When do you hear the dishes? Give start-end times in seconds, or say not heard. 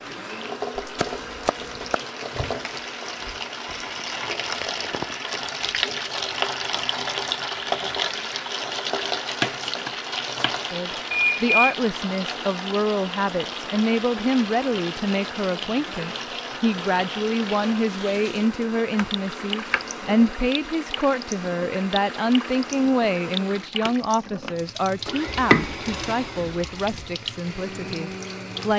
not heard.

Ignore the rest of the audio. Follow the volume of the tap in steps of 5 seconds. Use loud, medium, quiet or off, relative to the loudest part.
medium, loud, medium, medium, medium, medium.